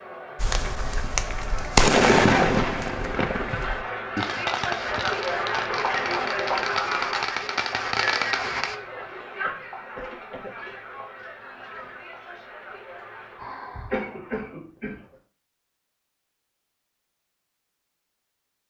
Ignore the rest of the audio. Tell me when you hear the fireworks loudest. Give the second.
2 s.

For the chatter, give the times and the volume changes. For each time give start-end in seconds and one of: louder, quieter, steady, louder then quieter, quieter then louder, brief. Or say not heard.
0.0-13.6 louder then quieter.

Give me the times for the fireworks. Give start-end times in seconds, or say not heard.
0.4-8.8.